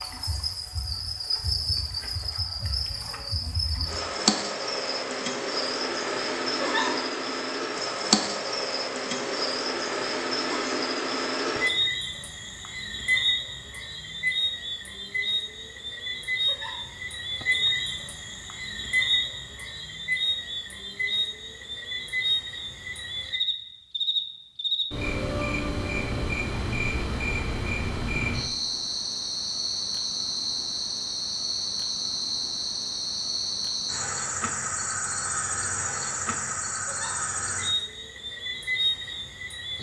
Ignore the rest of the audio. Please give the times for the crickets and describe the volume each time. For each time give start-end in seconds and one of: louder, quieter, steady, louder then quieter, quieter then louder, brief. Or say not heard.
0.0-39.7 steady.